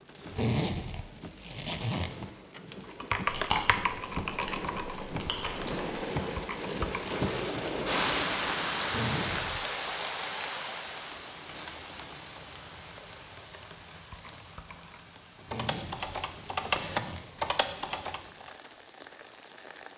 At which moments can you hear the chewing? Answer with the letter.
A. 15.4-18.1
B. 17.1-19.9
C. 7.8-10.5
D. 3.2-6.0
D.